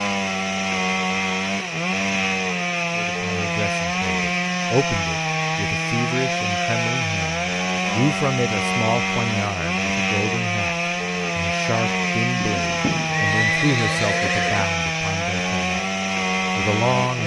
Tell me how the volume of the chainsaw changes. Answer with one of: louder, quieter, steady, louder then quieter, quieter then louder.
steady.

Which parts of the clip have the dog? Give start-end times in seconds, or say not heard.
not heard.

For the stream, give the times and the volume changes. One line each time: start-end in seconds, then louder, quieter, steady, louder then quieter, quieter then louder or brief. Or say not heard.
not heard.